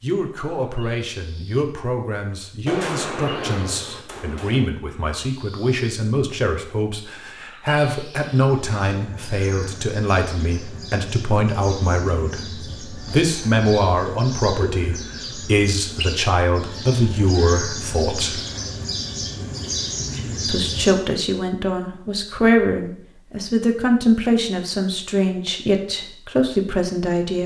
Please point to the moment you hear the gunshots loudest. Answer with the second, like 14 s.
3 s.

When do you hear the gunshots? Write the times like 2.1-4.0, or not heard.
2.6-4.7.